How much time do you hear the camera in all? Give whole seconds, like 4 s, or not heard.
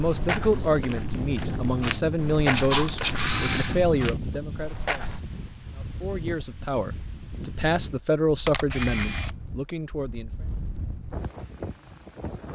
2 s.